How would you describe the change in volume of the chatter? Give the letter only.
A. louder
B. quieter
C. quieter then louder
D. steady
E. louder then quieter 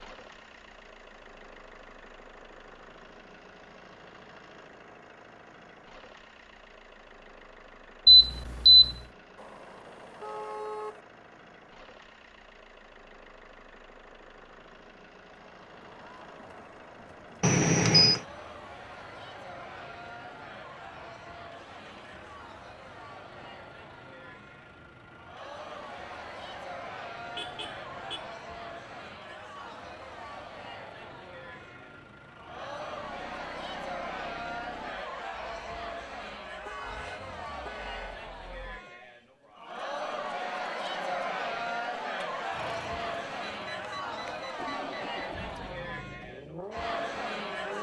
A.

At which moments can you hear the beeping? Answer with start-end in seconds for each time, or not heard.
8.1-8.9, 17.4-18.2, 43.5-45.3.